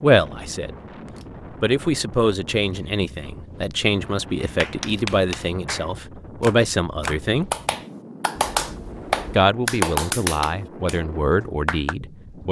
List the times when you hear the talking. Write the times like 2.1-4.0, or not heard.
0.0-0.8, 1.6-7.5, 9.3-12.4.